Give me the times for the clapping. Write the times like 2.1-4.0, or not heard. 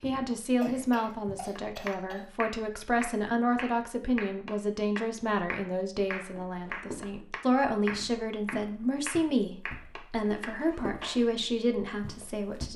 1.6-11.3.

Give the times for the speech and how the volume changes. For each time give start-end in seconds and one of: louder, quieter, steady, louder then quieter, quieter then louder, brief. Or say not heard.
0.0-12.7 steady.